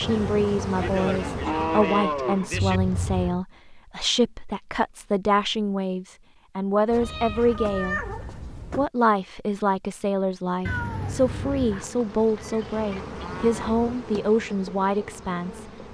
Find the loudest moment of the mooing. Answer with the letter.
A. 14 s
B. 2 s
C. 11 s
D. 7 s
B.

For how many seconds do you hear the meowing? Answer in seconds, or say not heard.
4 s.